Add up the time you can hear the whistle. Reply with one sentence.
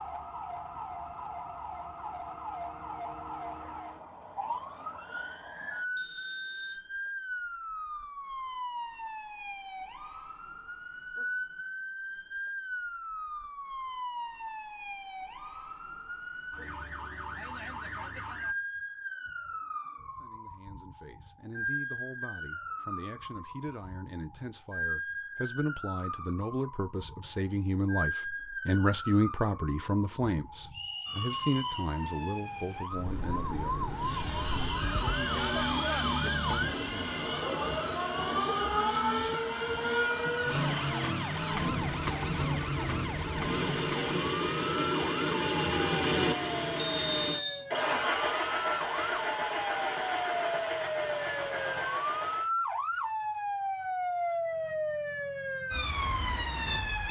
The whistle can be heard for 3 seconds in total.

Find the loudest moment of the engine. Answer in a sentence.
The loudest moment of the engine is at 46 seconds.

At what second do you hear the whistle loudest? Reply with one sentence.
The loudest moment of the whistle is at 47 seconds.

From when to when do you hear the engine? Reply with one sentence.
The engine can be heard from 33.9 to 52.5 s.